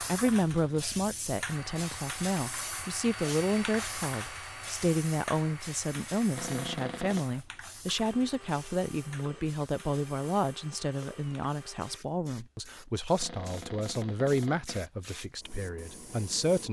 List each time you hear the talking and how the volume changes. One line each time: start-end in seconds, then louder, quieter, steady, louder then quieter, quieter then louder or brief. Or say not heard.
0.0-16.6 steady.